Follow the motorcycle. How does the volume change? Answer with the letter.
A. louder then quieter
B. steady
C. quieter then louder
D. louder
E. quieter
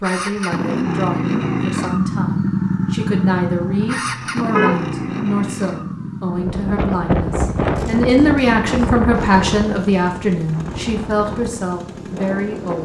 E.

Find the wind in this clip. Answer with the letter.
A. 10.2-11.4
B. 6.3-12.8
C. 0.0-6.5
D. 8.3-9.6
B.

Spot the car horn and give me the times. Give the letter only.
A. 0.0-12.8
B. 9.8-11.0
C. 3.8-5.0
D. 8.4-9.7
C.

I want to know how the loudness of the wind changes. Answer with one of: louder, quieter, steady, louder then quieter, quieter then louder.
quieter.